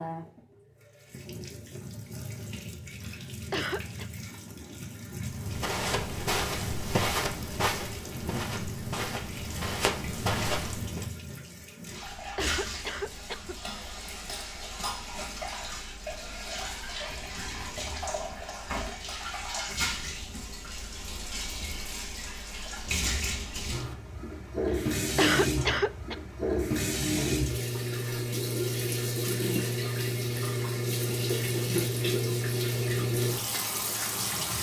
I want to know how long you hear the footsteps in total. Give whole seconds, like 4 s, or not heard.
6 s.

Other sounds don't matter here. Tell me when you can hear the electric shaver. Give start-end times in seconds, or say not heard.
not heard.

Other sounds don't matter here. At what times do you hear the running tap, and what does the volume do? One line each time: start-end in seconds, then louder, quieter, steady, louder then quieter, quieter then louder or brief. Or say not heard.
0.0-34.5 louder.